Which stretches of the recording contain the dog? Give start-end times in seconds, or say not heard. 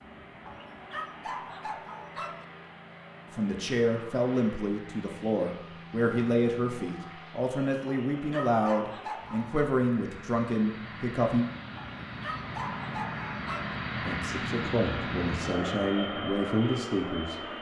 0.5-2.5, 7.8-9.7, 11.8-13.8.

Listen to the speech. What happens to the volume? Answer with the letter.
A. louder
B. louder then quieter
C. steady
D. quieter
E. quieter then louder
C.